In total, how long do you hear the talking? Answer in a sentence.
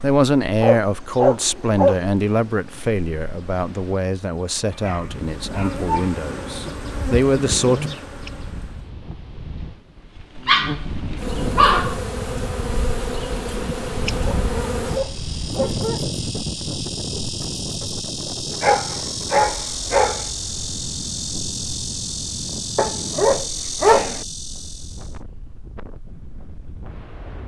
You can hear the talking for 8 seconds altogether.